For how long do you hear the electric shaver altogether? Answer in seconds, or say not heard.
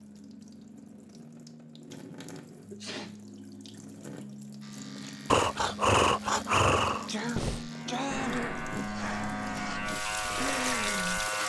7 s.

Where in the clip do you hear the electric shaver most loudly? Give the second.
11 s.